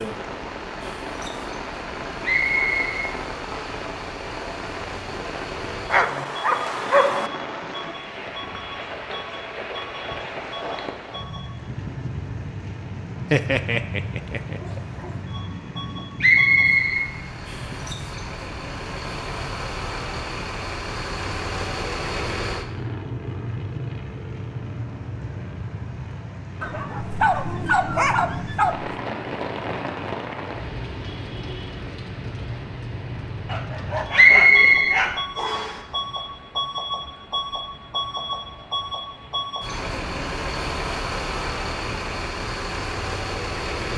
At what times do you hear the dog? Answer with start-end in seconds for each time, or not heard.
5.9-7.3, 13.3-15.1, 26.6-28.9, 33.5-35.2.